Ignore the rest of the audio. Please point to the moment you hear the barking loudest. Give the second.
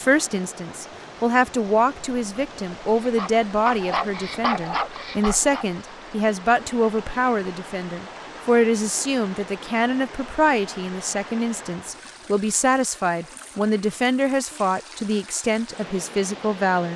5 s.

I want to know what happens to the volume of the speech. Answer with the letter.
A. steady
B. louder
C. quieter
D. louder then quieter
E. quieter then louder
A.